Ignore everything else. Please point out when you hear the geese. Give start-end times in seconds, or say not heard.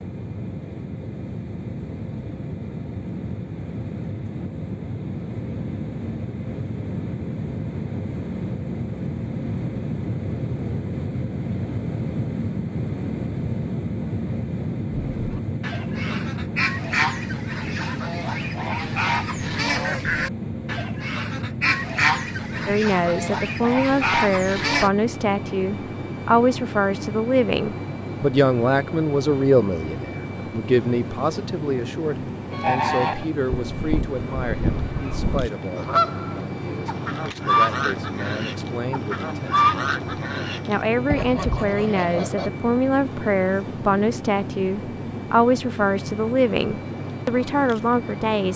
15.2-24.9, 32.5-42.5.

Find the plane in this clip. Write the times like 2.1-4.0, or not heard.
0.0-48.5.